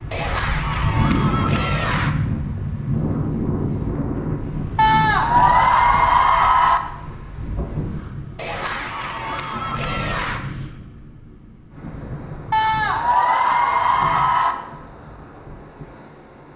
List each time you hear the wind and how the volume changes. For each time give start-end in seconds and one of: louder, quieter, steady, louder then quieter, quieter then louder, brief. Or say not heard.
0.0-16.5 quieter.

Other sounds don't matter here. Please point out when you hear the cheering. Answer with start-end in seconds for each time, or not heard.
0.1-2.1, 4.8-6.8, 8.3-10.4, 12.5-14.6.